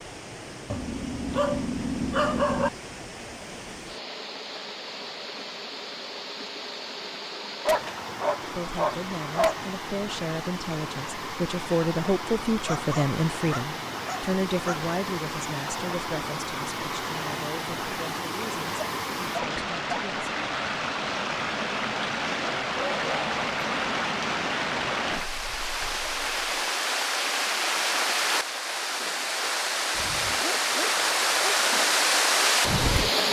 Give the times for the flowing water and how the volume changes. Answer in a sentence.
The flowing water can be heard from 0.0 to 33.2 s, getting louder.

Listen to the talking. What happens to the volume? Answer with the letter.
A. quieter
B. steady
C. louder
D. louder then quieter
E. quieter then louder
D.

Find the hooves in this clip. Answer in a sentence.
You can't hear the hooves here.